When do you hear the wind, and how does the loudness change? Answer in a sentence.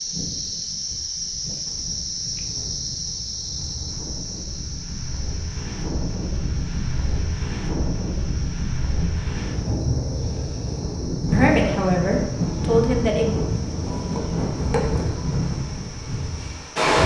You can hear the wind from 0.0 to 17.0 s, getting louder.